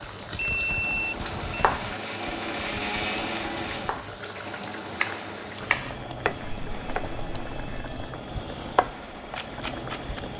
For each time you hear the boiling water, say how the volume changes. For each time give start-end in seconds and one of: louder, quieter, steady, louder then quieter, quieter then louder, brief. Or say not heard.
0.0-10.3 steady.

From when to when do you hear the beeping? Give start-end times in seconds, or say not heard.
0.3-1.8.